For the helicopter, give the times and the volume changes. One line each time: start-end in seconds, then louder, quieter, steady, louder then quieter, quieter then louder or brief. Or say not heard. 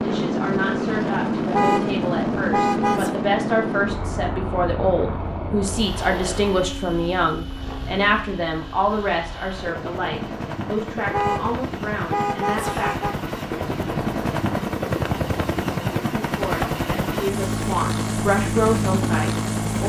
0.0-19.8 quieter then louder.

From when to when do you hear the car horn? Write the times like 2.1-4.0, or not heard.
1.5-3.1, 11.1-13.2.